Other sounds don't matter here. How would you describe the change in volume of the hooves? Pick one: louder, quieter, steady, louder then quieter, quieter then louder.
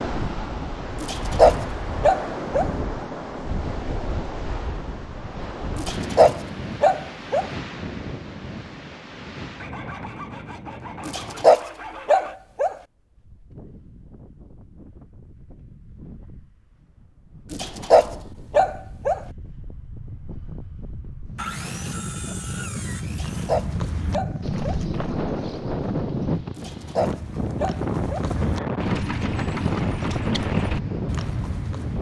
quieter then louder.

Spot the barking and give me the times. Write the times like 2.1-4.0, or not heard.
1.0-2.7, 5.8-7.5, 11.1-12.8, 17.5-19.2, 23.1-24.8, 26.6-28.2.